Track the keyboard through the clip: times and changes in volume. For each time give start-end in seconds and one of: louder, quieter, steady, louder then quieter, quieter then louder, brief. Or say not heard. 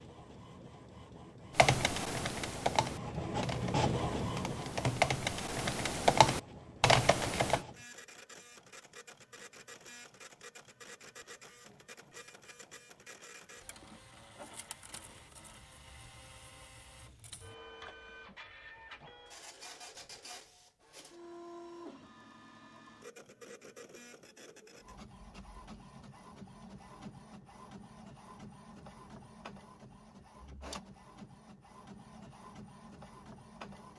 1.6-7.6 quieter then louder.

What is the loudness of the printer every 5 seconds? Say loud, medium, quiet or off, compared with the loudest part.
loud, quiet, quiet, quiet, quiet, quiet, quiet.